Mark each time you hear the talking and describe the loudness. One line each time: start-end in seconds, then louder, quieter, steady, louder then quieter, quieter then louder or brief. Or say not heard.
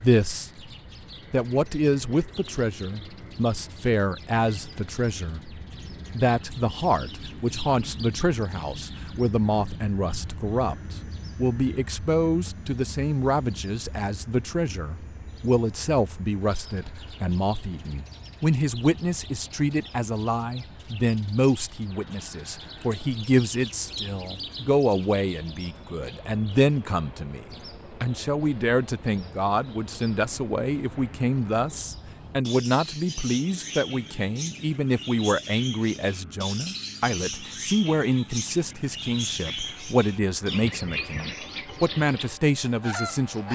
0.0-0.7 brief
1.3-43.5 steady.